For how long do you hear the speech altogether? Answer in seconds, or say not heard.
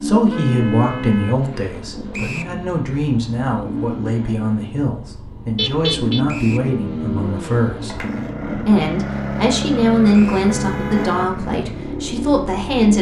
13 s.